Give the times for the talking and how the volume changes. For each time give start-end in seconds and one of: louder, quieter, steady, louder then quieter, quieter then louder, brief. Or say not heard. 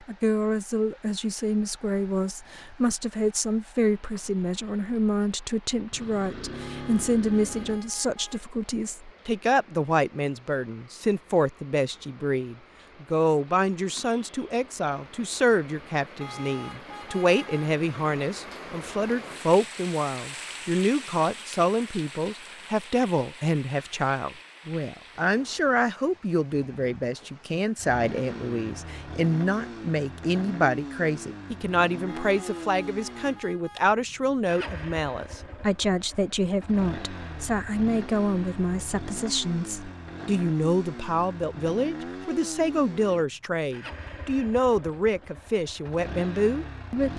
0.1-47.1 steady.